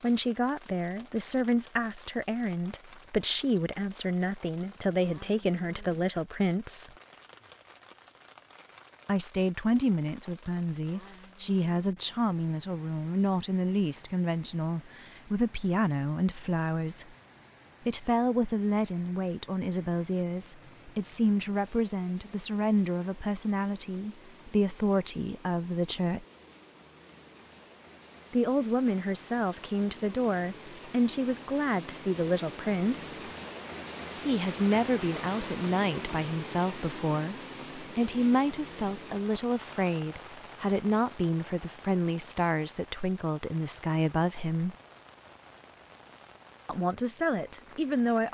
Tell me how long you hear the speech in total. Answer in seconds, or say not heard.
40 s.